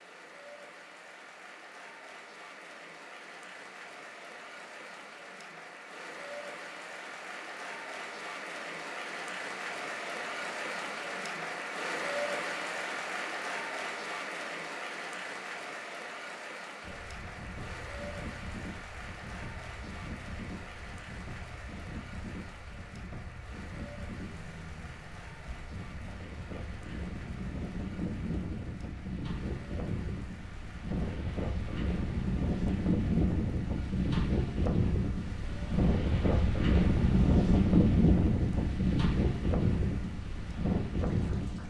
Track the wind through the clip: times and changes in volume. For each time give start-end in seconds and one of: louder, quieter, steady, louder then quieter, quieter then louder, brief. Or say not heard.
16.8-41.6 louder.